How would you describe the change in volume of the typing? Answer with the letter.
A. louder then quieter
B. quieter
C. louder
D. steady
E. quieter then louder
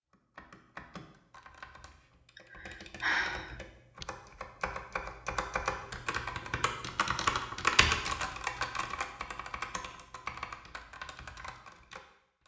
A.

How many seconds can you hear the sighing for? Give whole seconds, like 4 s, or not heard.
2 s.